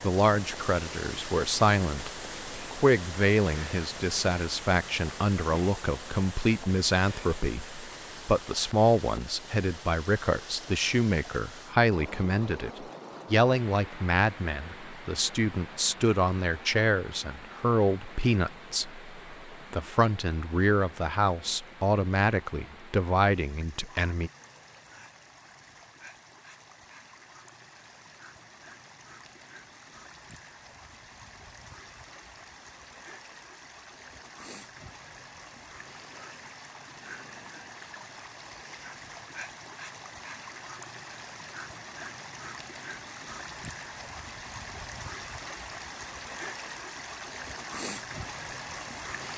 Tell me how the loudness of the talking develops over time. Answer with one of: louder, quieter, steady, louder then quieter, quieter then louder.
steady.